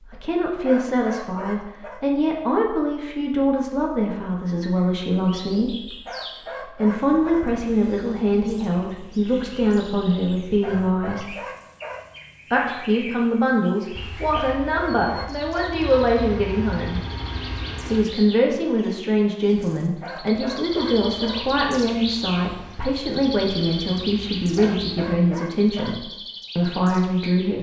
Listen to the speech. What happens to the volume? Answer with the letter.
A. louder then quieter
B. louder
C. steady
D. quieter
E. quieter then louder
C.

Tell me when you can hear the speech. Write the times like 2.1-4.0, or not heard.
0.0-11.3, 12.5-17.0, 17.9-27.5.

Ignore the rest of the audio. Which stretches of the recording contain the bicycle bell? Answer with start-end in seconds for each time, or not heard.
not heard.